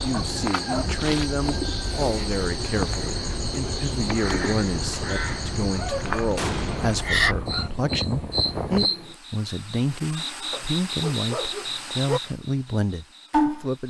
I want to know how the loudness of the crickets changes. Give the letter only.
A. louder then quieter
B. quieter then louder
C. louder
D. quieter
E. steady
E.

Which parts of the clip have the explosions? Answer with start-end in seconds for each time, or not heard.
6.3-7.2.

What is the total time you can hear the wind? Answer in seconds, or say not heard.
9 s.